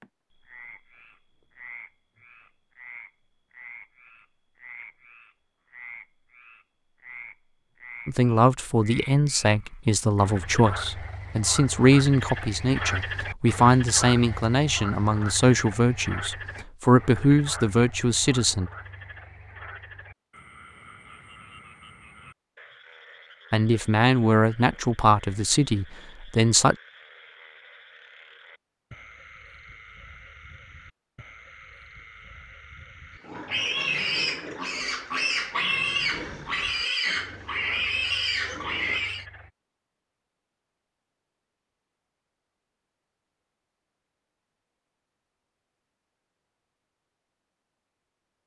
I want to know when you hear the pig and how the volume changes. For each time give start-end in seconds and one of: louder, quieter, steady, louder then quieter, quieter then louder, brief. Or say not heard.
33.1-39.2 steady.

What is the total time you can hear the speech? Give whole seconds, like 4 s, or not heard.
14 s.